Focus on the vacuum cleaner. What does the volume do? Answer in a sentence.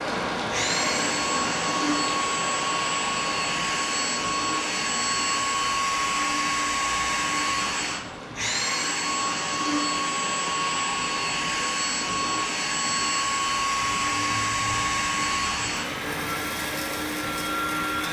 The volume of the vacuum cleaner stays about the same.